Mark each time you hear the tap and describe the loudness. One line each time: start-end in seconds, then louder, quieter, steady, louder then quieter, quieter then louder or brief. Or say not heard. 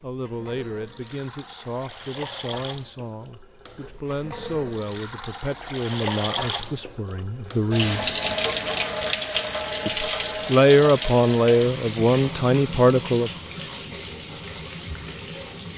0.0-15.7 louder then quieter.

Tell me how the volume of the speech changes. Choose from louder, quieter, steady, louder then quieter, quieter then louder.
louder.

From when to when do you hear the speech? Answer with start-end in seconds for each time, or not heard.
0.0-8.2, 9.8-13.3.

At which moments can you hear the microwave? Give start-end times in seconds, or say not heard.
not heard.